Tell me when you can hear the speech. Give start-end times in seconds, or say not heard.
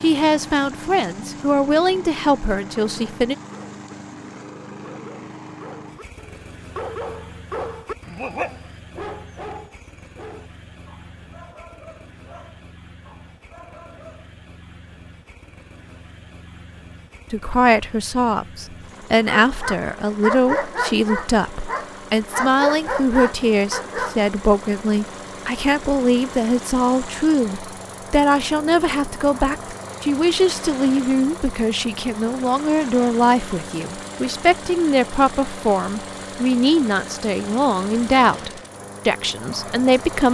0.0-3.4, 17.3-40.2.